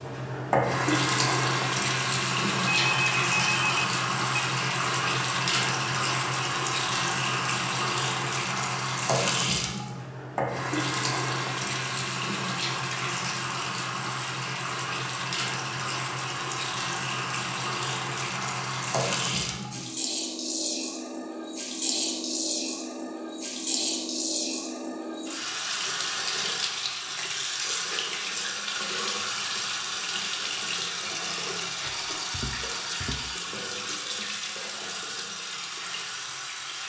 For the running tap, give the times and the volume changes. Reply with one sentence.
The running tap can be heard from 0.0 to 36.8 s, getting quieter.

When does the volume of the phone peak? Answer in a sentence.
The volume of the phone peaks at 3 seconds.